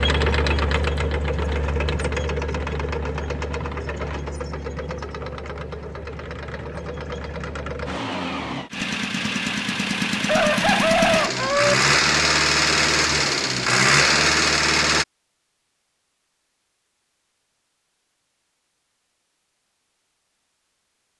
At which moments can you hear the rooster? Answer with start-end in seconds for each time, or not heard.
10.2-11.8.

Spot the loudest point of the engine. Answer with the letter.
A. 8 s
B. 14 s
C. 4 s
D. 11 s
B.